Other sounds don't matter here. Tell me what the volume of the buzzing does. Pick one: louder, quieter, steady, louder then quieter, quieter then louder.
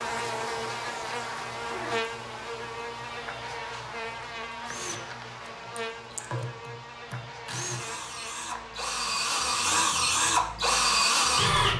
quieter.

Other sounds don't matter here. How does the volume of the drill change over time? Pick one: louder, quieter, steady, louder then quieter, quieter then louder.
louder.